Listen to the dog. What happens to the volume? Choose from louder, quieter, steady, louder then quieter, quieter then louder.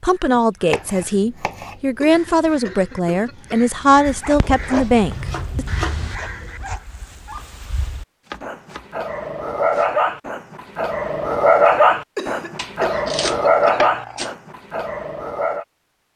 louder.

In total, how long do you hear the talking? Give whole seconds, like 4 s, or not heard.
6 s.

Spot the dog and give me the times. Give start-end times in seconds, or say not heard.
4.0-15.7.